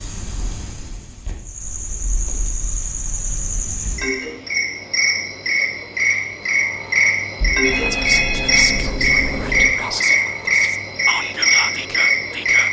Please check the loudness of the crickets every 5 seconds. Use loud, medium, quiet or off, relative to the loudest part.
medium, loud, loud.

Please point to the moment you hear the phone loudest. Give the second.
8 s.